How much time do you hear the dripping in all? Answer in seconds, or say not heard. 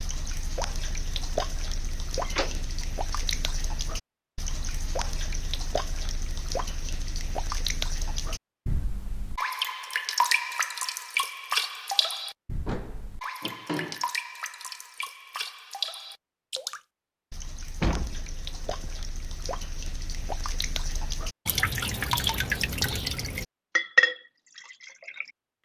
25 s.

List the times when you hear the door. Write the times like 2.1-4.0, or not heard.
2.2-2.9, 12.7-14.1, 17.8-18.9.